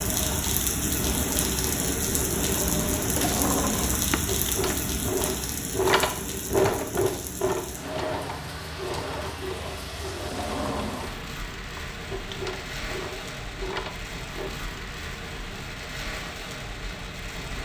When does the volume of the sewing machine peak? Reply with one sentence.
The volume of the sewing machine peaks at 6 seconds.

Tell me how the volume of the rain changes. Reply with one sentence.
The volume of the rain goes down.